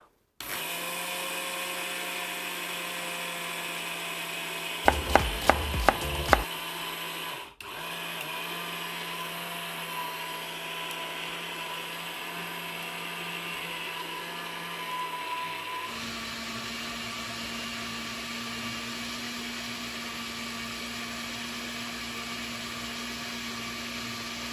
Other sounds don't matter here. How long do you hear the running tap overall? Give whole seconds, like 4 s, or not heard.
not heard.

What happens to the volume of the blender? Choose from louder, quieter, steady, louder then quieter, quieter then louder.
steady.